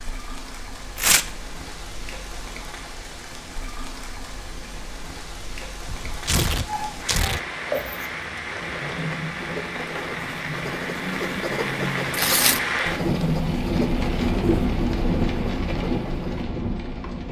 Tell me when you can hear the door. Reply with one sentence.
The door can't be heard in this clip.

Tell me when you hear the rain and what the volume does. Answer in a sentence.
The rain can be heard from 0.0 to 17.2 s, getting louder.